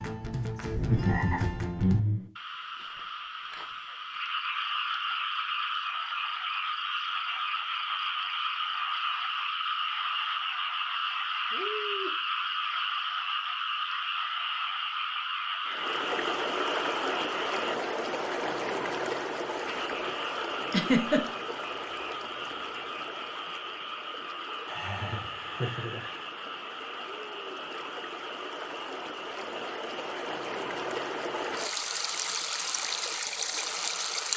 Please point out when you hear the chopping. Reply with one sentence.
The chopping can't be heard in this clip.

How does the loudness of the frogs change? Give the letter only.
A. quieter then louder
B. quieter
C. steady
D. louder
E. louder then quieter
B.